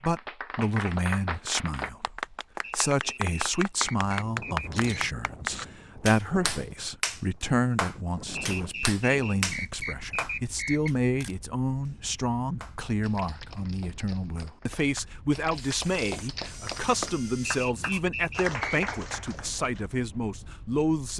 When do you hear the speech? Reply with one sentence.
The speech can be heard from 0.0 to 21.1 s.